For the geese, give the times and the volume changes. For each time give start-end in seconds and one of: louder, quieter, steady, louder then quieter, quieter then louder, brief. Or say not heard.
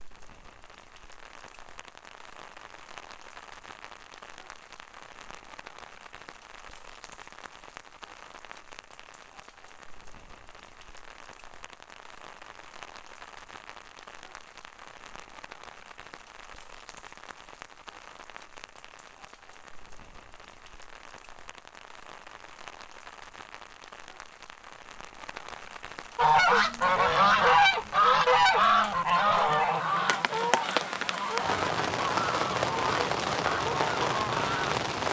26.1-34.8 quieter.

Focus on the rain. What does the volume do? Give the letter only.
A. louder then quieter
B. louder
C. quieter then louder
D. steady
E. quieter
B.